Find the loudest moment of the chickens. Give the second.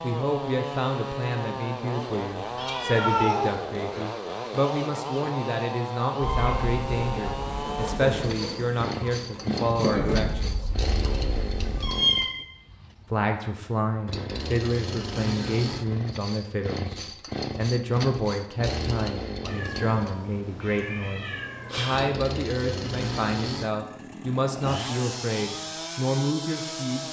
10 s.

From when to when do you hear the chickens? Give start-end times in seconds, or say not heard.
6.2-12.0.